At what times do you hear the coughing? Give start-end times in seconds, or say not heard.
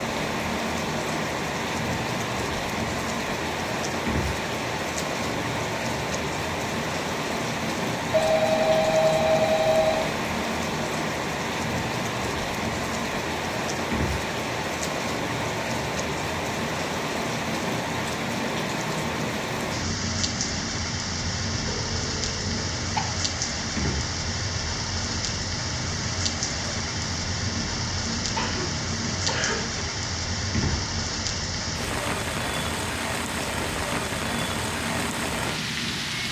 28.4-29.9.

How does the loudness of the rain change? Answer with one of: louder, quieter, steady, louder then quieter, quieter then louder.
steady.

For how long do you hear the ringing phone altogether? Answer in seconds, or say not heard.
3 s.